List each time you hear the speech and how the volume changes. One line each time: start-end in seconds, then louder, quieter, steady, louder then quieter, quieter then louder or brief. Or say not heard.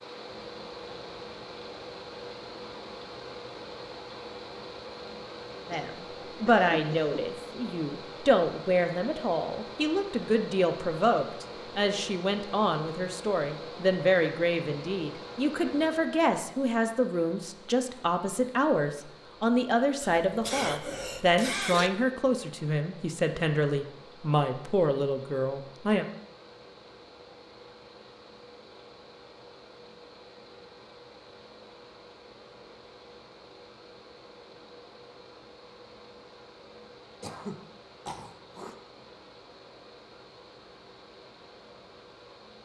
5.7-26.1 steady.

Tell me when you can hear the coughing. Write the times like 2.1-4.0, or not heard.
5.7-7.2, 20.0-21.9, 37.2-38.8.